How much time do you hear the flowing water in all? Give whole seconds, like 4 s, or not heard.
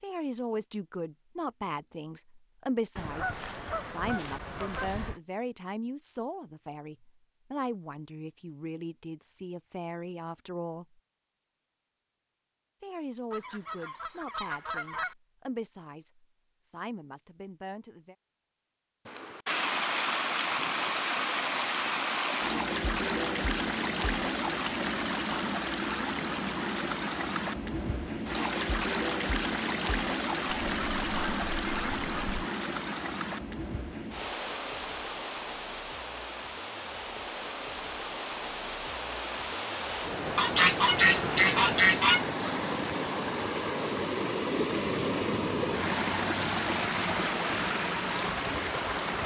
30 s.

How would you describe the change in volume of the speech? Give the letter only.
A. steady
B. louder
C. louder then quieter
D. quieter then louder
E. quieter
E.